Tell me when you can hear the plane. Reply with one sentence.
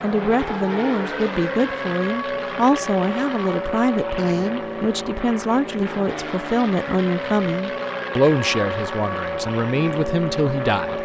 The plane can be heard from 0.0 to 11.0 s.